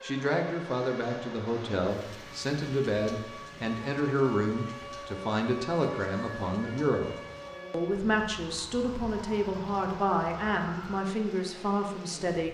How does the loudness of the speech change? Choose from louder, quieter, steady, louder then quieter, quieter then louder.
steady.